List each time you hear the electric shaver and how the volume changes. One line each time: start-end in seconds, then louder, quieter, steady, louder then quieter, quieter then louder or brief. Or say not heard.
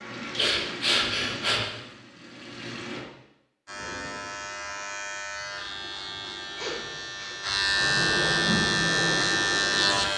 3.6-10.1 louder.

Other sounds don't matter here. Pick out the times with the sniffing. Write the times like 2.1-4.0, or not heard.
0.3-1.6, 6.0-7.3.